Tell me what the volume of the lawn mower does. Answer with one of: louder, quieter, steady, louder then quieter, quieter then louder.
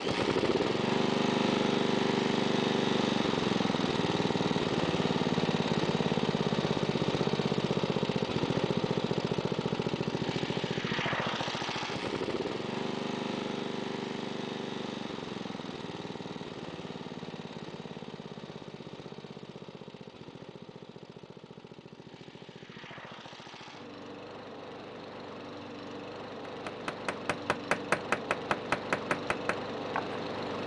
quieter then louder.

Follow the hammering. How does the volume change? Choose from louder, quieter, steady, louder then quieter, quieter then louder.
louder then quieter.